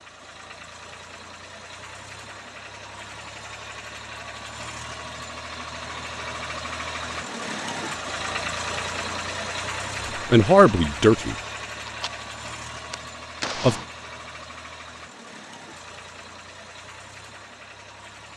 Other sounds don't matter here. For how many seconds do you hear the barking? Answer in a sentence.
The barking can't be heard in this clip.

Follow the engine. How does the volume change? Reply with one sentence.
The loudness of the engine goes up, then down.